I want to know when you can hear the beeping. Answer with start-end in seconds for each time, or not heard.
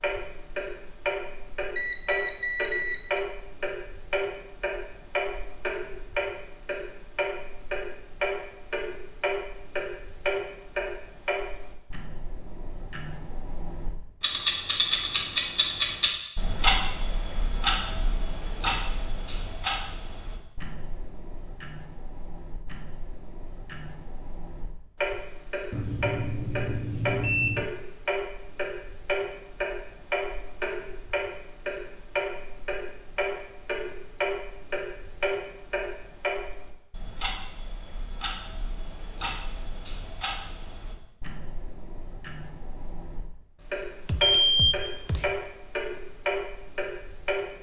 1.8-3.2, 25.7-27.7, 44.0-45.2.